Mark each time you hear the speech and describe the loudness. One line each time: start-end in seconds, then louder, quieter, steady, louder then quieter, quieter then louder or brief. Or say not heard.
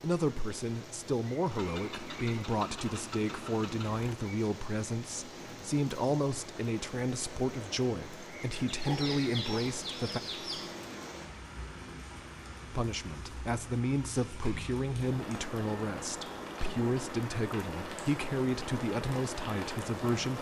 0.0-10.2 steady
12.7-20.3 steady.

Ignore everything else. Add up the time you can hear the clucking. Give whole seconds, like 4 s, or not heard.
2 s.